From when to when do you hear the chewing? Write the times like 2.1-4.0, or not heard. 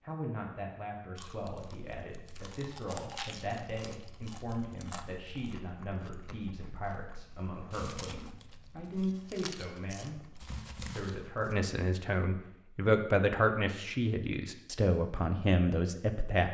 1.1-11.7.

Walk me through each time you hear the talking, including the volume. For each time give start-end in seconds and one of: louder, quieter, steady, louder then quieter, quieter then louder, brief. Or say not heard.
0.0-16.4 louder.